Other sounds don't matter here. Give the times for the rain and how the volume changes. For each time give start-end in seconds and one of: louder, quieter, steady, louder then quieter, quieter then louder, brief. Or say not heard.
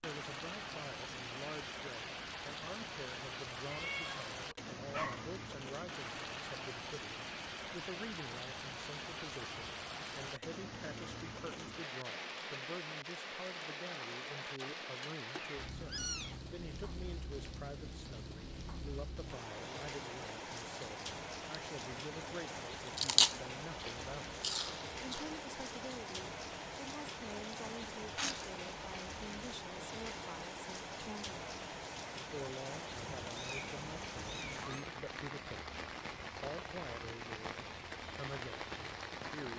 0.0-39.5 steady.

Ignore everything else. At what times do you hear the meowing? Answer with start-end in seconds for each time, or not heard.
3.7-5.2, 15.3-16.4, 33.1-34.9.